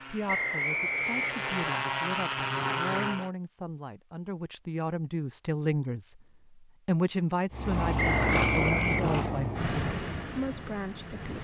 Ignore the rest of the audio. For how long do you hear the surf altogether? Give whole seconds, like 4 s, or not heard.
not heard.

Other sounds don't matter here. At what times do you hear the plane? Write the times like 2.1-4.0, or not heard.
0.0-3.3, 7.5-11.3.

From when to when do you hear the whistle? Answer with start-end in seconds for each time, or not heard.
0.2-1.6, 8.0-9.1.